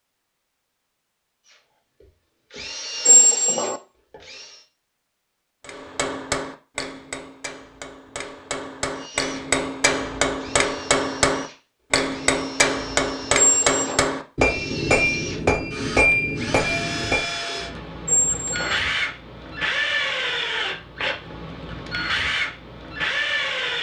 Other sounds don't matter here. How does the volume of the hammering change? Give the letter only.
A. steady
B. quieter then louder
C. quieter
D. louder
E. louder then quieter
D.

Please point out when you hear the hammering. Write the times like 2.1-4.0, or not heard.
5.7-17.4.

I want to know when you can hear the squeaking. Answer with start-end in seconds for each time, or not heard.
3.0-3.8, 13.3-14.1, 18.1-18.8.